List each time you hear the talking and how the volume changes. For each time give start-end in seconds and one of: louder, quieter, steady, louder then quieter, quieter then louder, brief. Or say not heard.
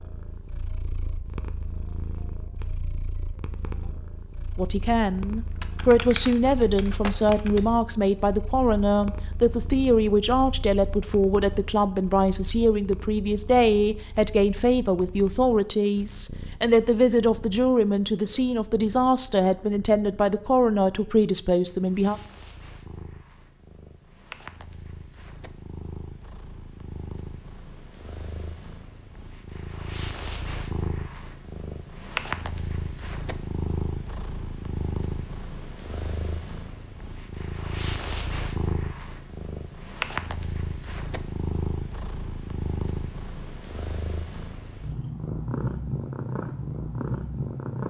4.5-22.2 steady.